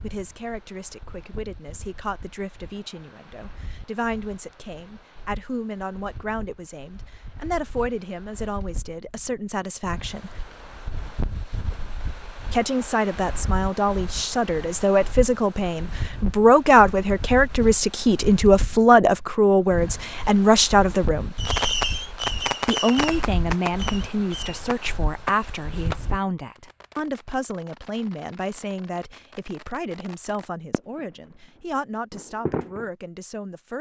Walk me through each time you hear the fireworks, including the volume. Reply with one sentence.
You can hear the fireworks from 21.4 to 32.9 s, getting quieter.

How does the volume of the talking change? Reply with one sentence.
The volume of the talking goes up, then down.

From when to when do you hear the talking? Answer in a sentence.
You can hear the talking from 0.0 to 10.4 s, from 12.5 to 21.4 s and from 22.6 to 33.7 s.